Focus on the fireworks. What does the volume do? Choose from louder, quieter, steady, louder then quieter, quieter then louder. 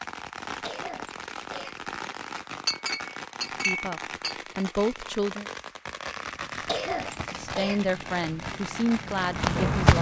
steady.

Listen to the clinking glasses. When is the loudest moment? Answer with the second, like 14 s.
3 s.